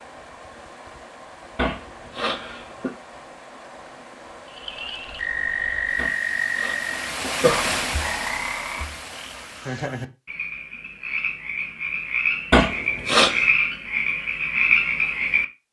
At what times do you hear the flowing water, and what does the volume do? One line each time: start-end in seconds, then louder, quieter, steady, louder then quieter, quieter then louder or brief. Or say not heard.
0.0-9.9 louder.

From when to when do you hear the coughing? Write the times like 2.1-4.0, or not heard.
1.6-3.0, 6.0-7.7, 12.5-13.5.